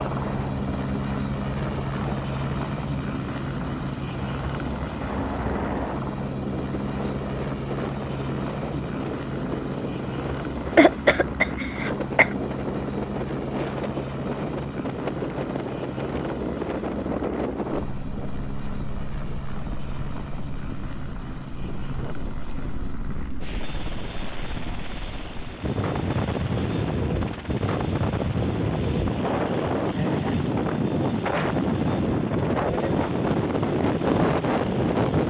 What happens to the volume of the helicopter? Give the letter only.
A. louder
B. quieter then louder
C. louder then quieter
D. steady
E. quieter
E.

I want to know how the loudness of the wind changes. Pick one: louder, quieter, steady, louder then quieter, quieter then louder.
louder.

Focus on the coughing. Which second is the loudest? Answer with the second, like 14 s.
11 s.